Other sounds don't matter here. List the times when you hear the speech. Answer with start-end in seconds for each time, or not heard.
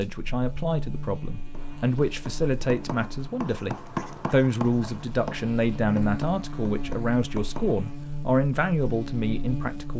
0.0-9.9.